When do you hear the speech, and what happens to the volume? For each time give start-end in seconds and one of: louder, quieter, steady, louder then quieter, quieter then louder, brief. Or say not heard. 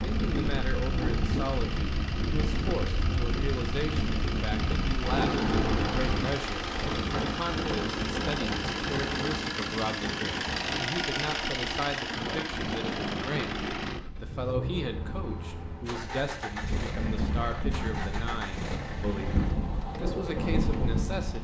0.1-21.4 steady.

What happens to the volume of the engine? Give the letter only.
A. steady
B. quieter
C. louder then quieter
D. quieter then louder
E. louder
C.